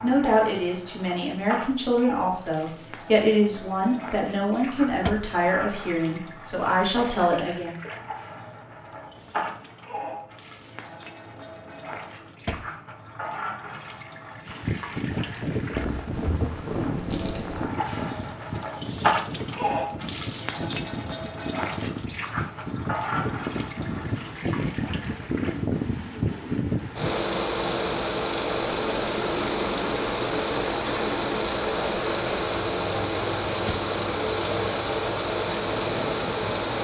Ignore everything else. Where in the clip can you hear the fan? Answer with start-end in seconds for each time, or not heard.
14.4-36.7.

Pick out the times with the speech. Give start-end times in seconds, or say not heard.
0.0-7.8.